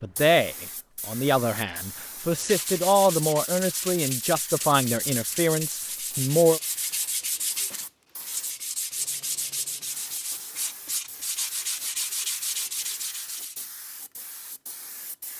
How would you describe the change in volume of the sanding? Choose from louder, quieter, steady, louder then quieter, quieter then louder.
steady.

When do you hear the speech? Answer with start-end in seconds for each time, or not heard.
0.0-6.6.